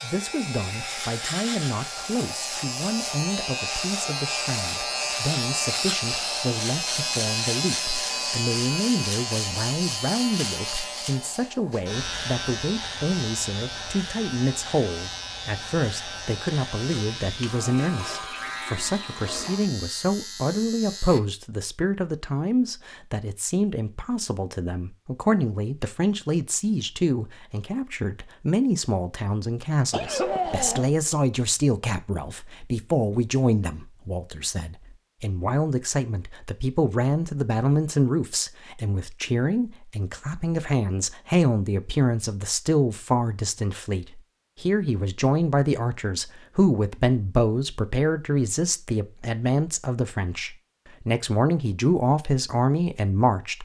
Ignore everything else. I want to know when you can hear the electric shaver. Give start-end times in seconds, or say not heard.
0.0-21.2.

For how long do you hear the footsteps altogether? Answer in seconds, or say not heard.
not heard.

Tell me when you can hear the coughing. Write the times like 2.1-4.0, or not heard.
29.9-30.9.